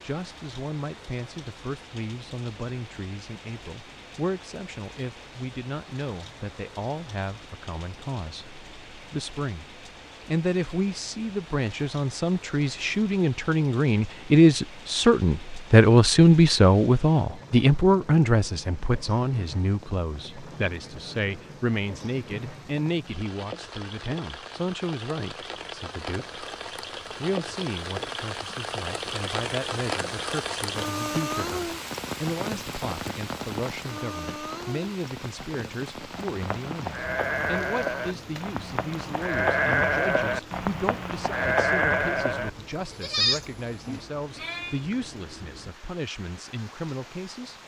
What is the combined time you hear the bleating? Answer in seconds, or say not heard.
9 s.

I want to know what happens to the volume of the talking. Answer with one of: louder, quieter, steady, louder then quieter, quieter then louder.
louder then quieter.